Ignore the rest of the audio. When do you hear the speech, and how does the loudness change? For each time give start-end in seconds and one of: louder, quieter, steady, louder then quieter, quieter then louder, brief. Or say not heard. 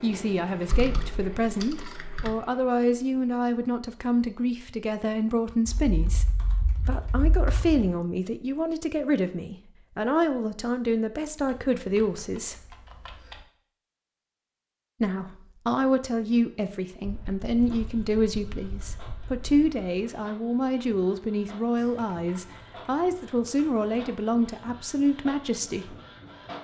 0.0-12.6 steady
15.0-25.9 steady.